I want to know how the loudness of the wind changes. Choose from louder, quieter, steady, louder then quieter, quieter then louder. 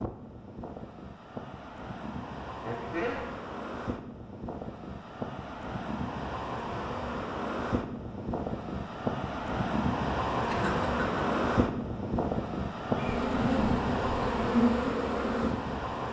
louder.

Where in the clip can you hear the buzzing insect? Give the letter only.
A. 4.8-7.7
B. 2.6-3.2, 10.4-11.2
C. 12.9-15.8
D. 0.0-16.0
C.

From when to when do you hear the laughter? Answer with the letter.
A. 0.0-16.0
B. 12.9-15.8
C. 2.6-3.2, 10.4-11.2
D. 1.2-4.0
C.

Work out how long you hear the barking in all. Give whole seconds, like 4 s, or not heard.
not heard.